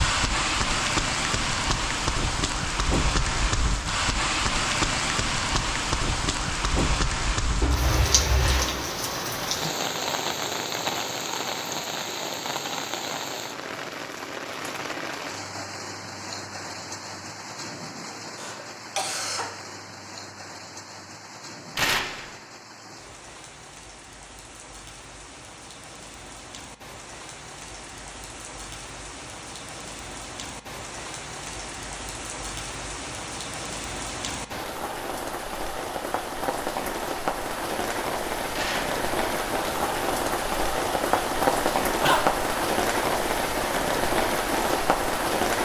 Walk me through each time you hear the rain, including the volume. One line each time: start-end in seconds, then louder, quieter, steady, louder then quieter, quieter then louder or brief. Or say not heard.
0.0-45.6 quieter then louder.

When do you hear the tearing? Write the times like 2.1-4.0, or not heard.
8.3-8.8, 21.8-22.2, 38.5-39.0.